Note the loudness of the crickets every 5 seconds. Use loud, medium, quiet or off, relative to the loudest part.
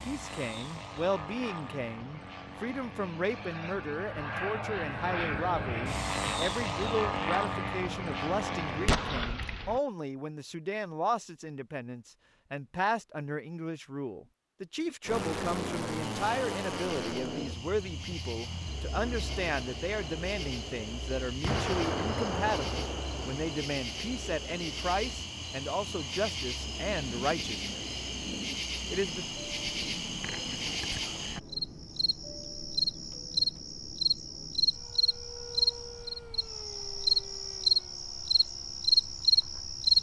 off, off, off, quiet, quiet, medium, medium, loud.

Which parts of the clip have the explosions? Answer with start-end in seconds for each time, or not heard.
8.8-9.8, 21.4-23.9.